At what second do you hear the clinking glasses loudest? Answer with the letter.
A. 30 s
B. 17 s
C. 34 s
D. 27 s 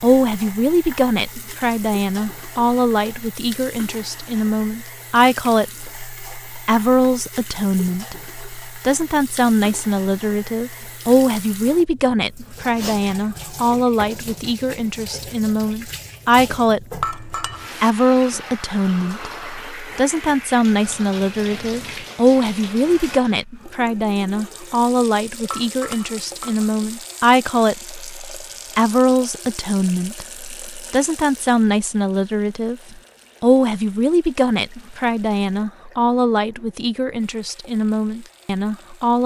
B.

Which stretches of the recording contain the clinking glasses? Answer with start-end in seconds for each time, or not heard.
17.0-17.9, 25.5-26.8.